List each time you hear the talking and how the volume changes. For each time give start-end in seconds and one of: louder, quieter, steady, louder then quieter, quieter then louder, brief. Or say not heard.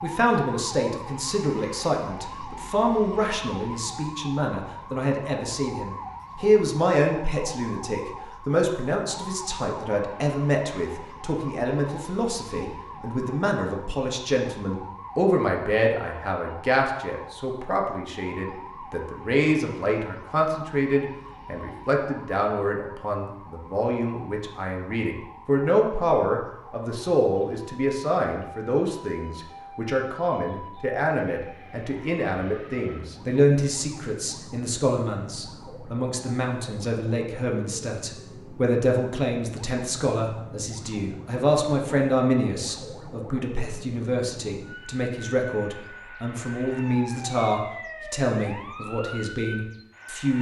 0.0-50.3 steady.